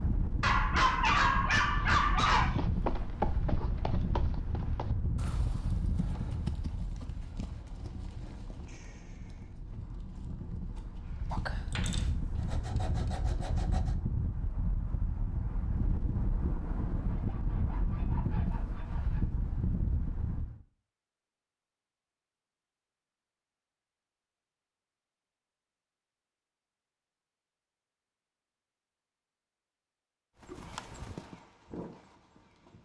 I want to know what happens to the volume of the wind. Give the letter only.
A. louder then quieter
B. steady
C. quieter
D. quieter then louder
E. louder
D.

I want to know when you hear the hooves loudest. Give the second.
3 s.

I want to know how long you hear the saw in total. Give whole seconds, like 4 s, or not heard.
5 s.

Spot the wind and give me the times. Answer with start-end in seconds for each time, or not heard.
0.0-20.6.